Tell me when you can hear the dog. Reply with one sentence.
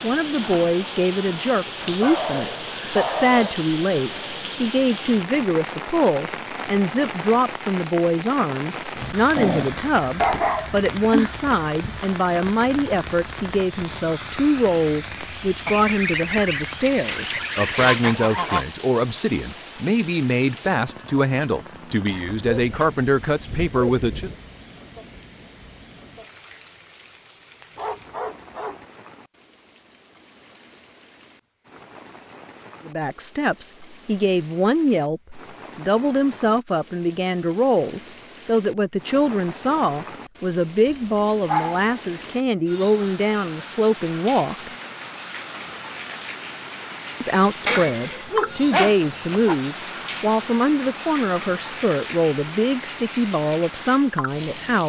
The dog can be heard from 1.8 to 3.6 s, from 9.3 to 11.3 s, from 22.1 to 24.4 s, from 27.8 to 28.8 s, from 40.9 to 41.9 s and from 47.6 to 49.5 s.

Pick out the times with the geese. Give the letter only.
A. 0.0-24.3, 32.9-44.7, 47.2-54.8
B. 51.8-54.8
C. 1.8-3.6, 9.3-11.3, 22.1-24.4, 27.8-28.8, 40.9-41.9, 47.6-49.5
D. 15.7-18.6
D.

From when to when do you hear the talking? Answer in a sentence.
You can hear the talking from 0.0 to 24.3 s, from 32.9 to 44.7 s and from 47.2 to 54.8 s.